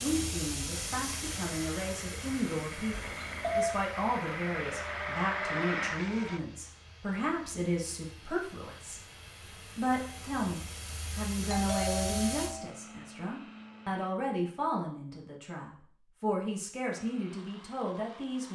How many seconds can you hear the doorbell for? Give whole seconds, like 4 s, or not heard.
2 s.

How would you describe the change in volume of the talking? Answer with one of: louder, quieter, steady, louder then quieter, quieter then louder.
steady.